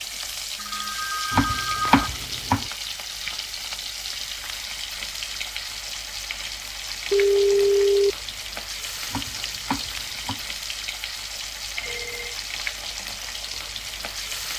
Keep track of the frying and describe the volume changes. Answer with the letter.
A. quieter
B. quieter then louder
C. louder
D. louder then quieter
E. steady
E.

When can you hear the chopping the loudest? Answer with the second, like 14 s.
2 s.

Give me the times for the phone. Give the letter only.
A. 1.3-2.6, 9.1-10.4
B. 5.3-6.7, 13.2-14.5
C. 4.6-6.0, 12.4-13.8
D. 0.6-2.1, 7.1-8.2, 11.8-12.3
D.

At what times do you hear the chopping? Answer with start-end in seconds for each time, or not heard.
1.3-2.6, 9.1-10.4.